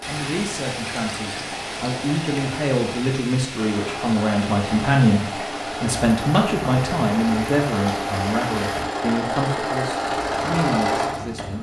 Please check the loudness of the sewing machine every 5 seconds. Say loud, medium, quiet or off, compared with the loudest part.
medium, loud, loud.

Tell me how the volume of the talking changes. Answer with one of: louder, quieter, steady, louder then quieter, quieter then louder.
louder then quieter.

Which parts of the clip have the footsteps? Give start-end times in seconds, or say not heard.
not heard.